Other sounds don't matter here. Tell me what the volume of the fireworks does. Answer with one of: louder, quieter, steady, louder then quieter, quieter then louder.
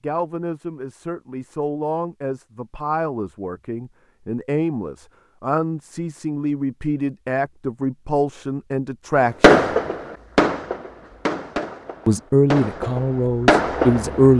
quieter then louder.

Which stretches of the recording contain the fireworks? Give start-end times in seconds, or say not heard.
9.4-14.3.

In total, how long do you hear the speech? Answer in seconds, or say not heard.
12 s.